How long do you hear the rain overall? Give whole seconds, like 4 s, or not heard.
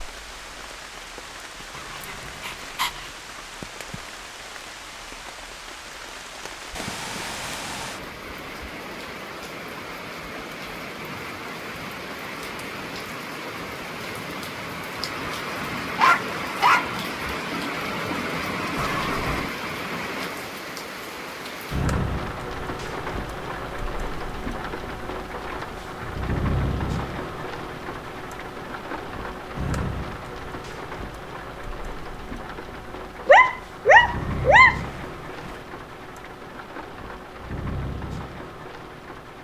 39 s.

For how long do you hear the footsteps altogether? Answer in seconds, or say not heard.
not heard.